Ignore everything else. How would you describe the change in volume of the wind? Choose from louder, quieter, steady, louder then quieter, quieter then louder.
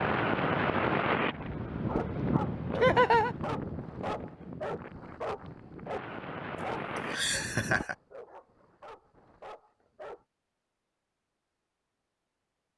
quieter then louder.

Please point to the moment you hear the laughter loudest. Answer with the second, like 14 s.
3 s.